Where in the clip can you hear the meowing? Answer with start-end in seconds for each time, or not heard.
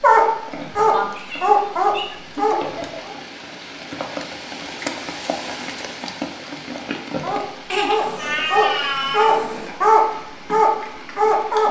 0.9-2.1, 8.0-9.7.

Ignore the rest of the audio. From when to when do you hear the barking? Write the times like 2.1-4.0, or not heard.
0.0-3.1, 7.2-11.6.